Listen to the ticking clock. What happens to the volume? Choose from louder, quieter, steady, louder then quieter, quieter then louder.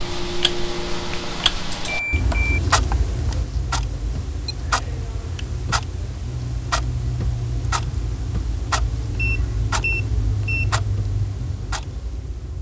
steady.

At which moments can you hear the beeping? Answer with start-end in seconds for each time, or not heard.
0.7-2.6, 4.5-5.5, 9.2-10.7.